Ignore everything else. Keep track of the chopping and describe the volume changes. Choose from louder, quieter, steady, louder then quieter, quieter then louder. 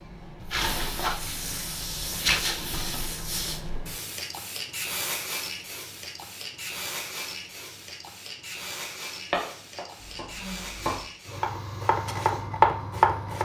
louder.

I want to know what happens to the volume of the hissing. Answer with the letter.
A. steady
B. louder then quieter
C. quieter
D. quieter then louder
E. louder
C.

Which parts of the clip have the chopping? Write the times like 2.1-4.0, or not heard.
9.3-13.4.